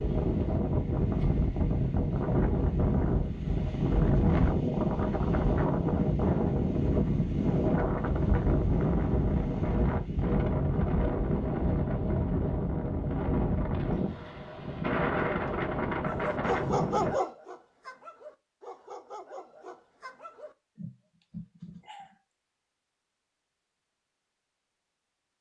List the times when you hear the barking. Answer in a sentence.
You can hear the barking from 16.1 to 22.1 s.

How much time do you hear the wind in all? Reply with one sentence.
The wind can be heard for 17 seconds in total.